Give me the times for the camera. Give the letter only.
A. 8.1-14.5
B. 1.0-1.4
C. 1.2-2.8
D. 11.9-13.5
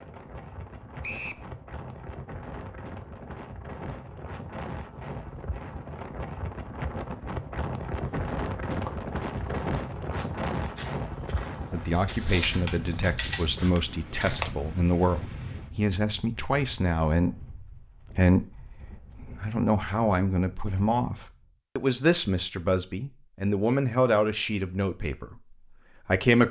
D.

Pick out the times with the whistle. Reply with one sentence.
The whistle can be heard from 1.0 to 1.4 s.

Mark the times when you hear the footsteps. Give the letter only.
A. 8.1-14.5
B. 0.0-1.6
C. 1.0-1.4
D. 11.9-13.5
A.